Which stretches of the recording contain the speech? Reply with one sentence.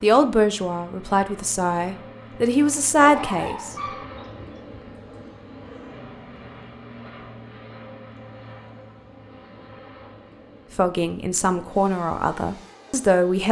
The speech can be heard from 0.0 to 3.8 s and from 10.8 to 13.4 s.